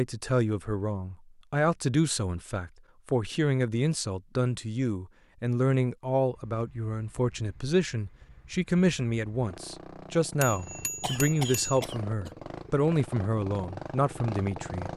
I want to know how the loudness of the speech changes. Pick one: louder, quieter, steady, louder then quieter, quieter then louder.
steady.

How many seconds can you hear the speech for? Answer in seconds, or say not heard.
15 s.